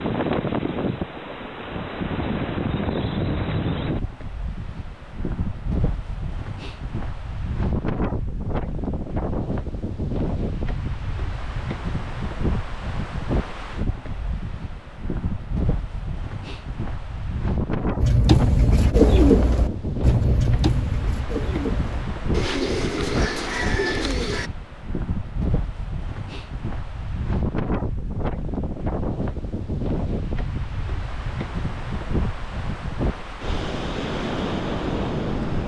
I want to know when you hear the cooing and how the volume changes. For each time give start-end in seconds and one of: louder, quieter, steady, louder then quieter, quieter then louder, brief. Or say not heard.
18.0-24.5 quieter.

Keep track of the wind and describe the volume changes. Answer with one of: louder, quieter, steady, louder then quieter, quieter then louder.
steady.